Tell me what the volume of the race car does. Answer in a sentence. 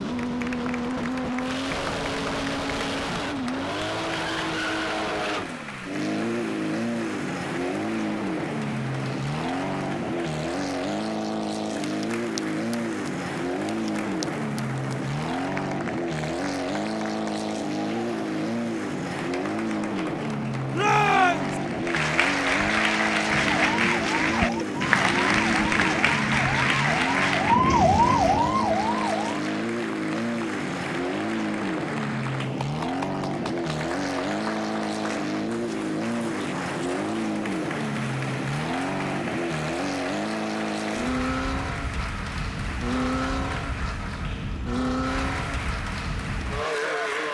The loudness of the race car stays about the same.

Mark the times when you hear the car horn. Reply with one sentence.
You can't hear the car horn here.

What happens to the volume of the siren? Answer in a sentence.
The volume of the siren goes up.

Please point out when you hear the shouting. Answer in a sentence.
The shouting can be heard from 20.7 to 21.6 s.